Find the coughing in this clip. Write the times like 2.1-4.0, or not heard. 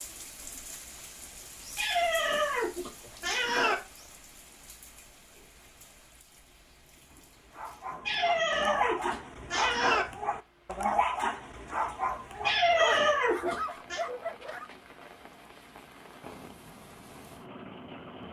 not heard.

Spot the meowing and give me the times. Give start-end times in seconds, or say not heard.
1.8-3.8, 8.1-10.1, 12.4-14.0.